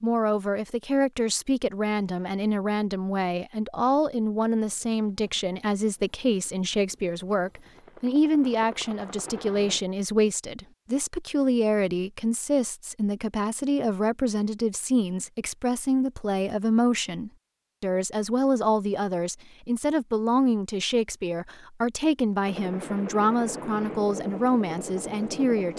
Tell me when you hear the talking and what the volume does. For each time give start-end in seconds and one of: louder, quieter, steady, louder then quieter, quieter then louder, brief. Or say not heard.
0.0-25.7 steady.